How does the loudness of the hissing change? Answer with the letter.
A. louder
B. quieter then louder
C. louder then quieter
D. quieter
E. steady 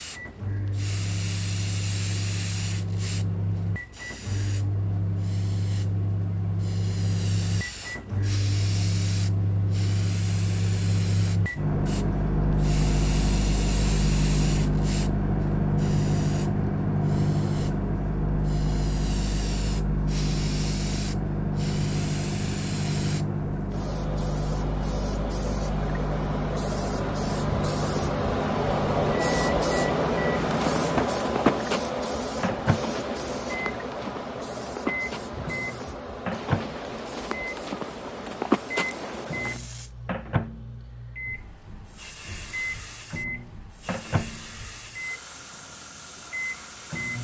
C.